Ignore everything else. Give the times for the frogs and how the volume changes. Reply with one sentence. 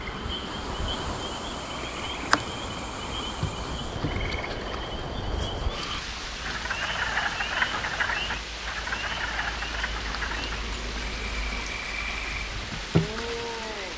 You can hear the frogs from 0.0 to 13.9 s, getting louder then quieter.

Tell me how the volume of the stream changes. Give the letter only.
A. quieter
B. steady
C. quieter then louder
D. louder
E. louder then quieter
B.